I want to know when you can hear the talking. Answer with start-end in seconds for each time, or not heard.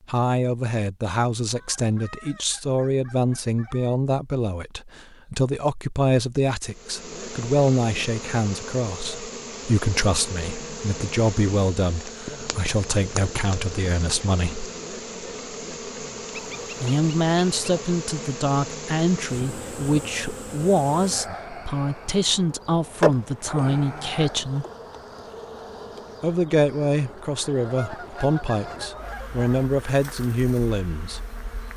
0.1-14.7, 16.8-24.6, 26.2-31.2.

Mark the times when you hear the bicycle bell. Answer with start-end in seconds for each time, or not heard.
not heard.